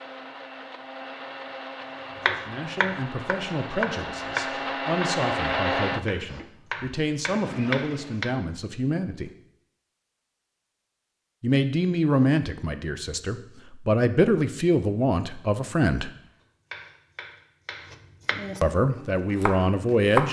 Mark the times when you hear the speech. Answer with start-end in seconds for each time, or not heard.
2.2-9.3, 11.4-16.1, 18.6-20.2.